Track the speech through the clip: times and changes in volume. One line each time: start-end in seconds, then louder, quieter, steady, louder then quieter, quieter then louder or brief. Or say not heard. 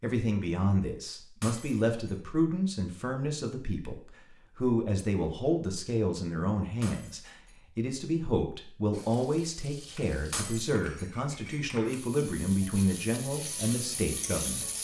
0.0-14.7 steady.